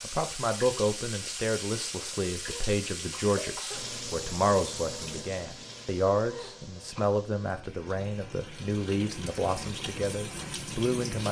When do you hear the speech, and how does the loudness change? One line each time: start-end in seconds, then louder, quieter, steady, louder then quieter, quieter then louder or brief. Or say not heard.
0.0-11.2 steady.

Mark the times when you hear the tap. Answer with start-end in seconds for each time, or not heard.
0.0-11.2.